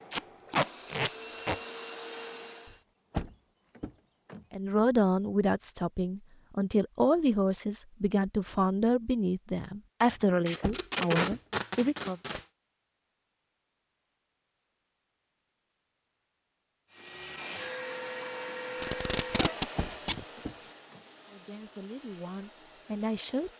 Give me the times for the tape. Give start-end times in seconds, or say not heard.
0.1-1.6, 10.4-12.4, 18.8-20.2.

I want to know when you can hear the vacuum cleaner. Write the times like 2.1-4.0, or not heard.
0.0-2.8, 16.9-23.5.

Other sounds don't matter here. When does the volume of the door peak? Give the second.
3 s.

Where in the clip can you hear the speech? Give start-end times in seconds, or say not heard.
4.5-12.2, 21.2-23.5.